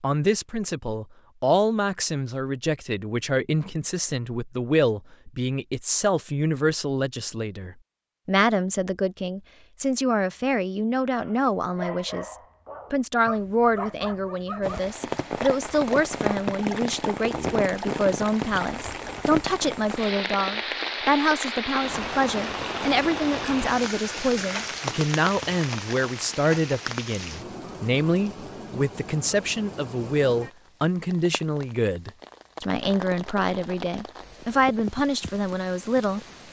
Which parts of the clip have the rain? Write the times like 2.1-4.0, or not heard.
14.6-36.4.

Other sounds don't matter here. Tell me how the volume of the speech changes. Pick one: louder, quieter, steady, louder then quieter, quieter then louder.
steady.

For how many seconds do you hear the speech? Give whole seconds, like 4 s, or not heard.
36 s.